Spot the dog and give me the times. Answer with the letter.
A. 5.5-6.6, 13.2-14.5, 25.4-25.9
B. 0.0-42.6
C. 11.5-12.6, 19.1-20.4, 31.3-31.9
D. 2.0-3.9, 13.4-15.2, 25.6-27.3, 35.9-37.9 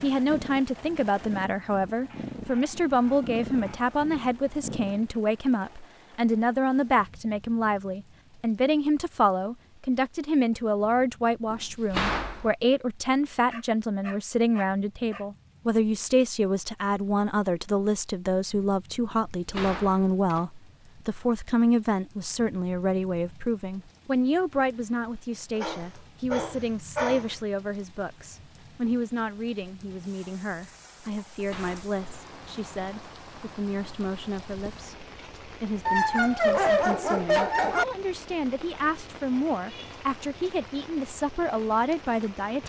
D.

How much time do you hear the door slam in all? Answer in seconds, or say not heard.
3 s.